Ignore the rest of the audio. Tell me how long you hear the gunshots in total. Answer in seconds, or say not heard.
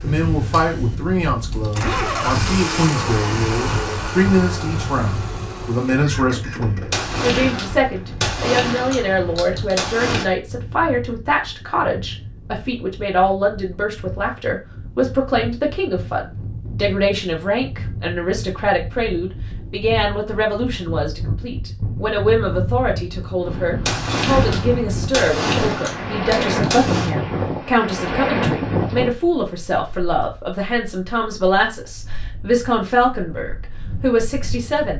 7 s.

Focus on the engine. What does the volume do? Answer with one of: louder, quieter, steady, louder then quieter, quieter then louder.
louder then quieter.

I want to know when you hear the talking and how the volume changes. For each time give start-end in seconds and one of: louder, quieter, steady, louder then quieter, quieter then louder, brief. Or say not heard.
0.0-34.9 steady.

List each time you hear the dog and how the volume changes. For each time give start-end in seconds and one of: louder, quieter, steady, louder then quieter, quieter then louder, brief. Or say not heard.
not heard.